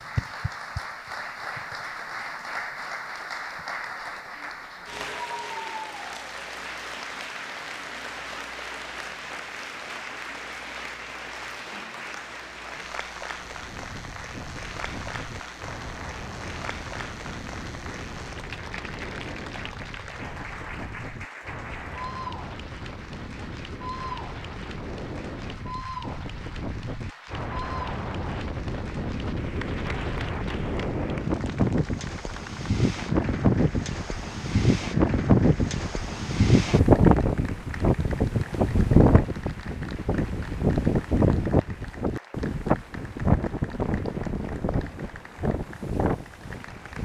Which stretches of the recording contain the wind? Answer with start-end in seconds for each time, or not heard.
13.4-46.9.